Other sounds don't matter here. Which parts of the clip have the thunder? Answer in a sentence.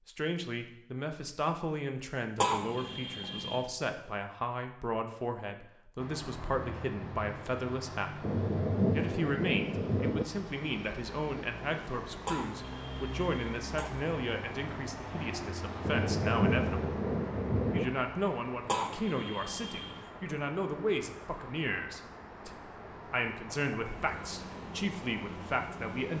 The thunder can be heard from 8.2 to 10.2 s and from 15.8 to 17.9 s.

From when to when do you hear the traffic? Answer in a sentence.
The traffic can be heard from 6.0 to 26.1 s.